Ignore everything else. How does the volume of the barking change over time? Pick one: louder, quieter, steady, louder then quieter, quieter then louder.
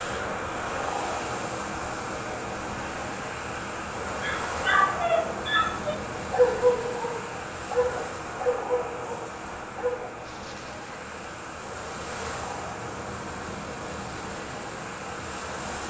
quieter.